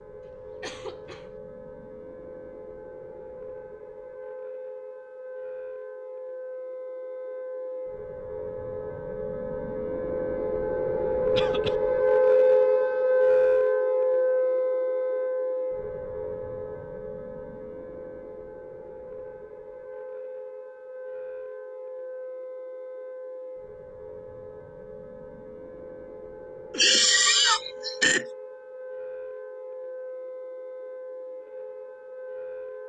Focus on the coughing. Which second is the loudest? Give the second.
27 s.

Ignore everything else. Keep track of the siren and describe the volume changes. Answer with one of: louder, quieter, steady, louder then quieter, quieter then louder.
louder then quieter.